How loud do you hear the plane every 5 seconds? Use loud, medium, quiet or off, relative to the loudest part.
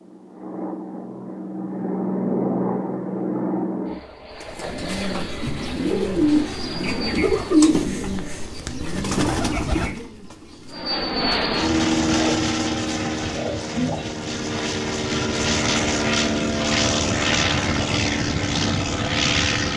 medium, quiet, loud, loud.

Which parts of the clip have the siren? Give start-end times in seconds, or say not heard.
not heard.